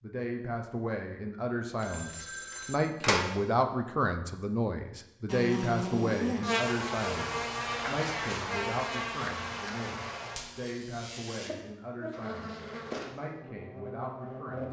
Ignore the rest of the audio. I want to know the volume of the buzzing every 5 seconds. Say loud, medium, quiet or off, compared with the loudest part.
off, loud, medium.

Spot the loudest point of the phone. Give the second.
3 s.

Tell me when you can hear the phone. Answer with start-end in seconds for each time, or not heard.
1.8-3.3.